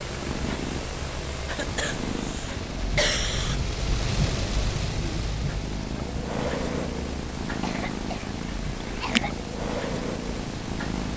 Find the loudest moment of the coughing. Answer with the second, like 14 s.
3 s.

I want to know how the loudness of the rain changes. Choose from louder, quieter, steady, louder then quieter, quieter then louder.
louder then quieter.